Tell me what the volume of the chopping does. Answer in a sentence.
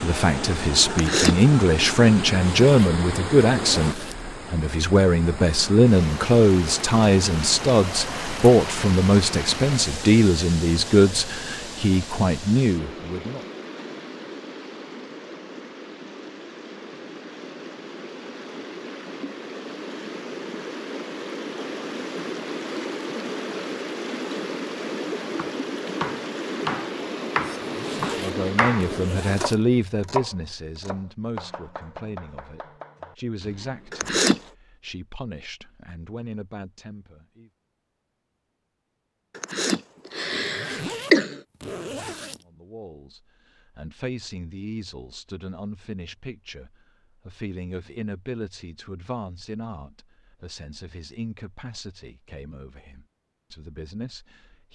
The loudness of the chopping goes down.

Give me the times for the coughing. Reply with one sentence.
You can hear the coughing from 0.9 to 1.4 s, from 33.9 to 34.4 s and from 39.4 to 41.4 s.